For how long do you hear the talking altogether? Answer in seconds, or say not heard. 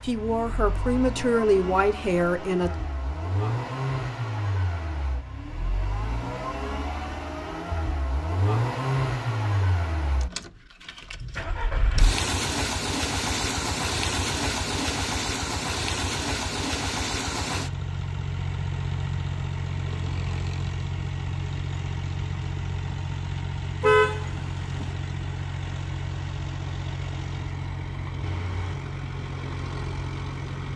3 s.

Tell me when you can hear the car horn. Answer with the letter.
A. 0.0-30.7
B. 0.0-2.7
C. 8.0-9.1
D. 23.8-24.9
D.